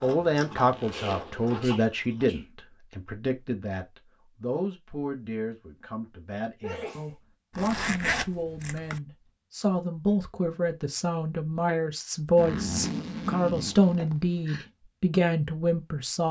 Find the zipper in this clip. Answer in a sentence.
The zipper can be heard from 0.5 to 1.7 s, from 7.5 to 9.0 s and from 12.3 to 14.7 s.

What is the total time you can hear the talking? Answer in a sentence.
The talking can be heard for 16 seconds in total.